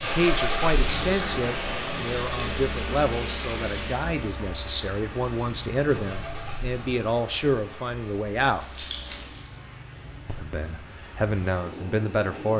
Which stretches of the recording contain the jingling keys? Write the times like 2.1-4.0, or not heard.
8.6-9.6.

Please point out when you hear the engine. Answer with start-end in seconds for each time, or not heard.
0.0-9.3.